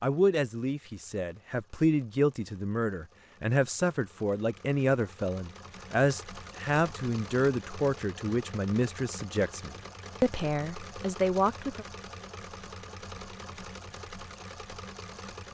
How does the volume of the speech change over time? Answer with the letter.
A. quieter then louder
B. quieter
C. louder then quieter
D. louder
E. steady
E.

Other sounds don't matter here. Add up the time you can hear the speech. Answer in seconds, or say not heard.
12 s.